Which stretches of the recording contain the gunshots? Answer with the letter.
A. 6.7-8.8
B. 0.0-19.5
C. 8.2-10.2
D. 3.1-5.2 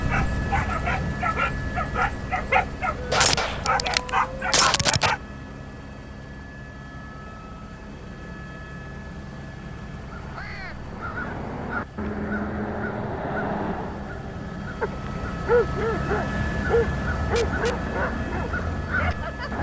D.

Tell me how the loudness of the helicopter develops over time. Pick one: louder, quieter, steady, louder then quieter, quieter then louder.
quieter then louder.